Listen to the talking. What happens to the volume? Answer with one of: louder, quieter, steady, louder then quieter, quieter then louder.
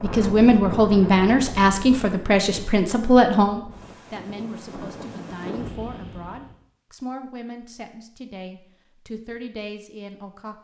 quieter.